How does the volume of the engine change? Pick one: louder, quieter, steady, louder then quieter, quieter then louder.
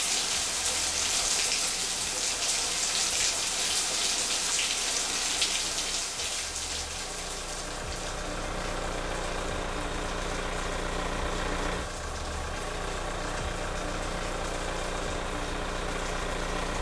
louder.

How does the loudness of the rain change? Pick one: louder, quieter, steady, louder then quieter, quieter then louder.
quieter.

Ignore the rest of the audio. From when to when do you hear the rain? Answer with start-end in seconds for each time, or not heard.
0.0-16.7.